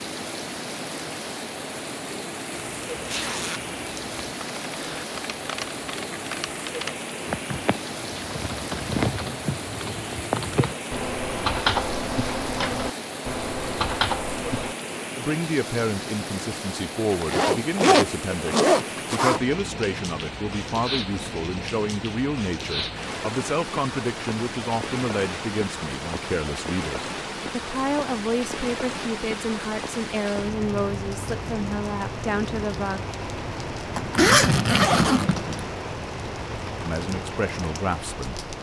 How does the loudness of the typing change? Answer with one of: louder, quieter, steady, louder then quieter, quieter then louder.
louder.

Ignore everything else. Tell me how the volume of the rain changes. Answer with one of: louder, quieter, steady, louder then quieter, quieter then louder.
steady.